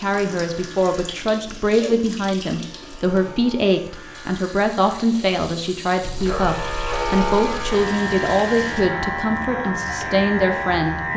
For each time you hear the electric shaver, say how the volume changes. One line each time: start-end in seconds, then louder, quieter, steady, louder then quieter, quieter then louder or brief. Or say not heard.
0.0-11.1 louder.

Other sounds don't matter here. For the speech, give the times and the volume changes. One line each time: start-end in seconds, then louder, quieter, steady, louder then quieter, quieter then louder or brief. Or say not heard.
0.0-11.1 steady.